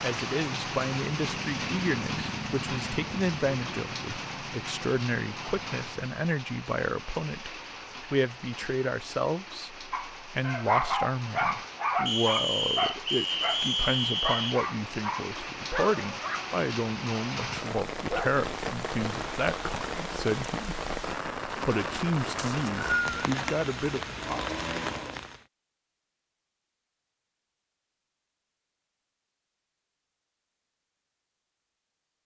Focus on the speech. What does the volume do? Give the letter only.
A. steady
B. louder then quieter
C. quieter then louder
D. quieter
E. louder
A.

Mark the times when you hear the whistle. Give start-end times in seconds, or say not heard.
12.1-14.6, 22.4-23.3.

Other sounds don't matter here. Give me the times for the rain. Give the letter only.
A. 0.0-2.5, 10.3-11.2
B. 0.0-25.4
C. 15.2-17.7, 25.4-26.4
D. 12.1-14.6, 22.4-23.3
B.